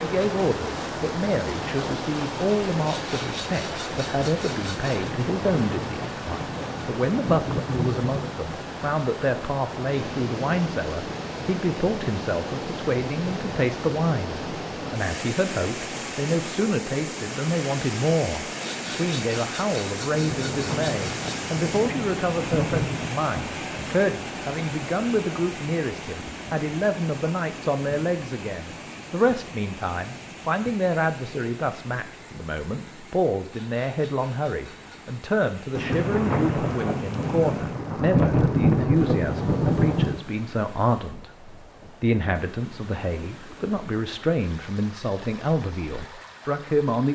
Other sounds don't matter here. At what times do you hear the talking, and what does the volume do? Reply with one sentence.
You can hear the talking from 0.0 to 47.1 s, at a steady volume.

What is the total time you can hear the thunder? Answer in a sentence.
The thunder can be heard for 11 seconds in total.